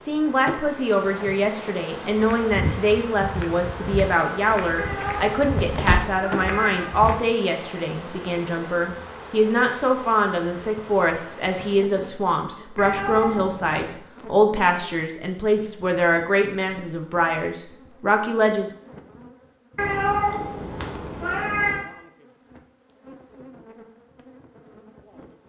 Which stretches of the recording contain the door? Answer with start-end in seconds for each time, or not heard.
5.5-6.1.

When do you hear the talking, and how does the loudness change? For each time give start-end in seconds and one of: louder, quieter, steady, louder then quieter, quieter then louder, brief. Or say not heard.
0.0-18.7 steady.